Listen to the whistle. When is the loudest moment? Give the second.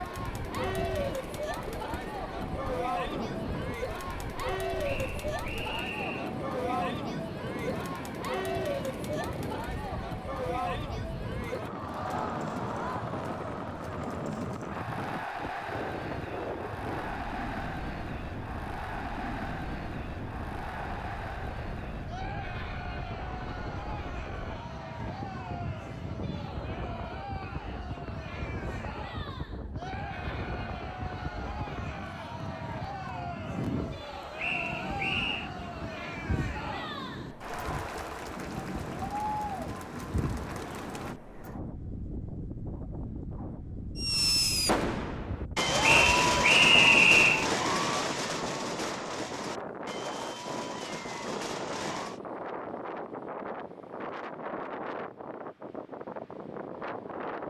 47 s.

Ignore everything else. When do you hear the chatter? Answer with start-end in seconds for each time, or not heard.
0.0-41.1.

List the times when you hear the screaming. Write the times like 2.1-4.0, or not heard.
not heard.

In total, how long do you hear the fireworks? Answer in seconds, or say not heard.
8 s.